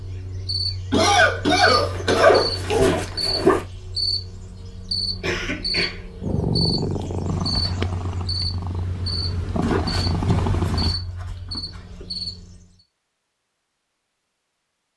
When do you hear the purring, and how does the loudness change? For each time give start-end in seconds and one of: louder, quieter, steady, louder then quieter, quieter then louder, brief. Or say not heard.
6.2-10.9 quieter then louder.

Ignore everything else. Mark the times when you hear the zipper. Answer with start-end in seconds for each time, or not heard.
1.7-3.6, 9.6-12.1.